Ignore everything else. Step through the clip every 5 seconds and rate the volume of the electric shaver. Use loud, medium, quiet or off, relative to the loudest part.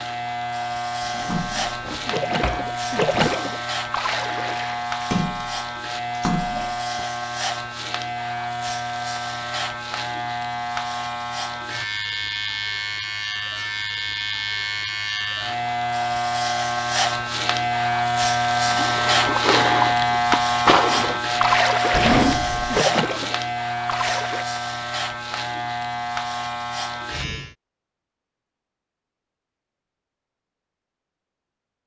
medium, medium, medium, loud, loud, medium, off.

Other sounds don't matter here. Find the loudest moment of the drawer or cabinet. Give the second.
22 s.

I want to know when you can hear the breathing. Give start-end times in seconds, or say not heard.
not heard.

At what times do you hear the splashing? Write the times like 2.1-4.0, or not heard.
1.2-7.0, 18.6-24.4.